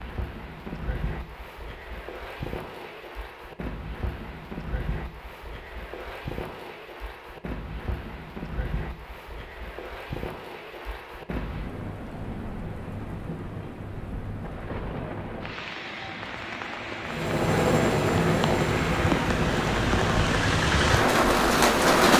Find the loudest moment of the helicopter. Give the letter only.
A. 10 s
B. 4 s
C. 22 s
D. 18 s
D.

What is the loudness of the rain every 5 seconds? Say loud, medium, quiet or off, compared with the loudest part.
quiet, quiet, quiet, medium, loud.